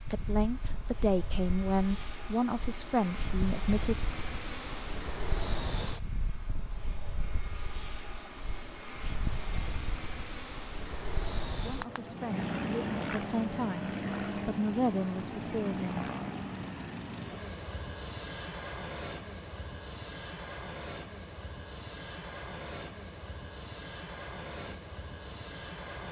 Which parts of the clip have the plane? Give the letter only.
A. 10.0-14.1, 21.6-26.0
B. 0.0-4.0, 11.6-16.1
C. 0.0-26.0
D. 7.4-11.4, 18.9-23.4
C.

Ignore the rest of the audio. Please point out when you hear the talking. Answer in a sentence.
You can hear the talking from 0.0 to 4.0 s and from 11.6 to 16.1 s.